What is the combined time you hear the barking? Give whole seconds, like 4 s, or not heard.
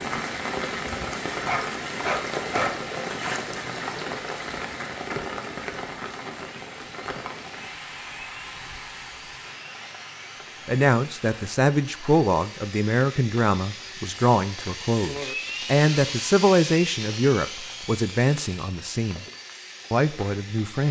2 s.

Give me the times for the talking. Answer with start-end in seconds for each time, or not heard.
10.7-19.2, 19.9-20.8.